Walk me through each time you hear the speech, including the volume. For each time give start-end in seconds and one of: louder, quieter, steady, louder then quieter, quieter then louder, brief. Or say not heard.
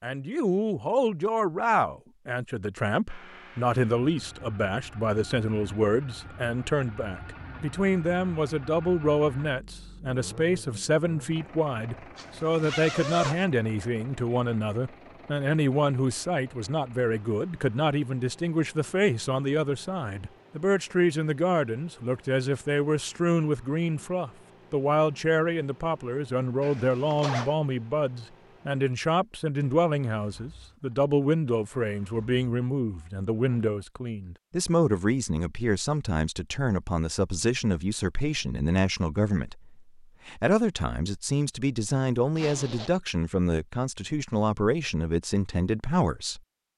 0.0-46.4 steady.